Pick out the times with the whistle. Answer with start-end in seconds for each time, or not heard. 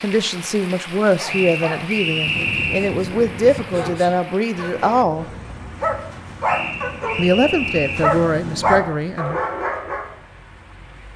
1.2-3.0, 6.5-8.1.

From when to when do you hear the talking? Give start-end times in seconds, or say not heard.
0.0-5.2, 7.2-9.4.